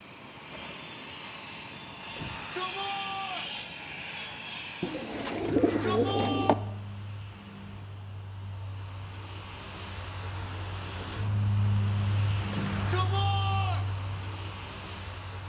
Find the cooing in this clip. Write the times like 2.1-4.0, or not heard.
4.8-6.5.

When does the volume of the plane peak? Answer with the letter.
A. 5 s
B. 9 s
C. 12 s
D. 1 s
C.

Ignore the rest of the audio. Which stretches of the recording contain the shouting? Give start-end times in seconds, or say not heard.
2.1-3.5, 5.5-6.5, 12.5-13.9.